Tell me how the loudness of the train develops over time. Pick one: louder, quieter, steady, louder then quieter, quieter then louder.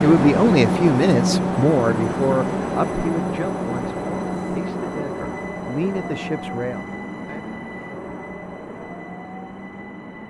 quieter.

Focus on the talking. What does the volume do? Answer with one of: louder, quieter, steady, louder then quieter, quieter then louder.
quieter then louder.